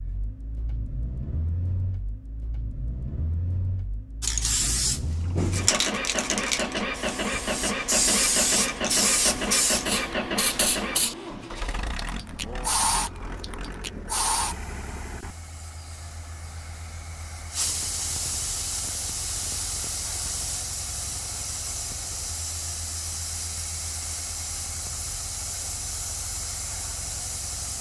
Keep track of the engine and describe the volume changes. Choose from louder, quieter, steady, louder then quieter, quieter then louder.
louder then quieter.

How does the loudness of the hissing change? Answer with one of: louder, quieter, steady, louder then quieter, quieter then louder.
quieter.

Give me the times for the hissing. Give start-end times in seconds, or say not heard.
4.2-27.7.